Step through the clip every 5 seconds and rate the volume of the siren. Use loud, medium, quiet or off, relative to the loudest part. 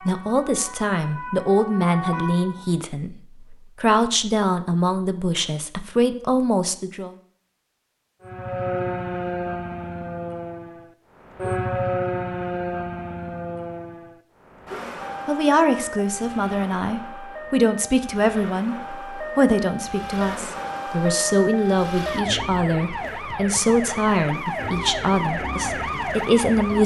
medium, loud, loud, medium, loud, loud.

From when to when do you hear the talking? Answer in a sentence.
The talking can be heard from 0.1 to 7.2 s and from 15.2 to 26.8 s.